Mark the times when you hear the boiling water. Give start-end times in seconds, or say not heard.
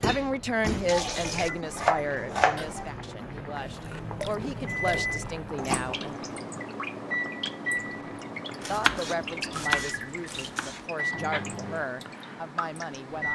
0.1-9.8.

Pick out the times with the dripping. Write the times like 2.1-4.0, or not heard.
3.6-13.3.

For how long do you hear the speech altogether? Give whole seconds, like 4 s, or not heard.
11 s.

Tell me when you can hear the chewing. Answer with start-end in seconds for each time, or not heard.
not heard.